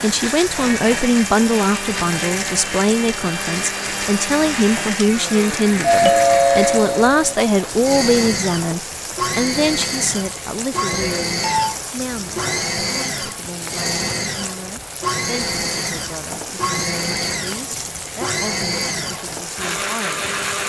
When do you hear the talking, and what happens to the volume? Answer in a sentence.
The talking can be heard from 0.0 to 20.4 s, getting quieter.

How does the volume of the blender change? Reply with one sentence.
The loudness of the blender stays about the same.